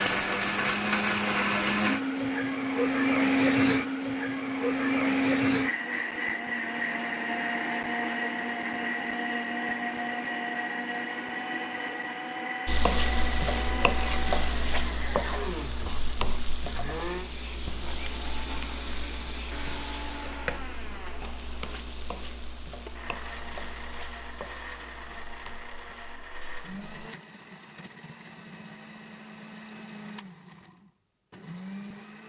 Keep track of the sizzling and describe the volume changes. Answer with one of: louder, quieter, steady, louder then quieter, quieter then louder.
quieter.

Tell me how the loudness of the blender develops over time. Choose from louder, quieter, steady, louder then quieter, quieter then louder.
quieter.